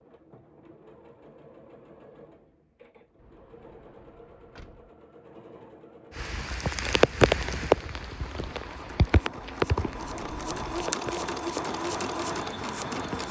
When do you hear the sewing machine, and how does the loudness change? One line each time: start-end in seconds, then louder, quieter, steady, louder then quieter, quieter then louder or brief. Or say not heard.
0.0-13.2 louder.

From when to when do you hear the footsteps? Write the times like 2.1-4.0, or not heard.
not heard.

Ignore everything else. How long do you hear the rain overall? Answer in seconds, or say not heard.
7 s.